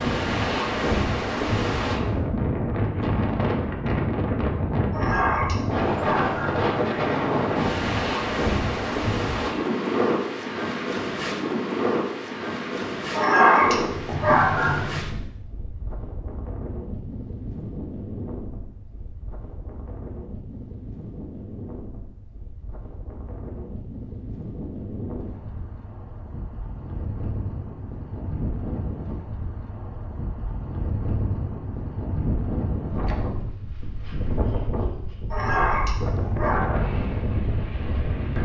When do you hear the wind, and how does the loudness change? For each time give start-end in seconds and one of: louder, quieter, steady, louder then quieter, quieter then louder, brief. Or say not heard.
0.0-38.3 quieter then louder.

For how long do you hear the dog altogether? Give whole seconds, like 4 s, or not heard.
5 s.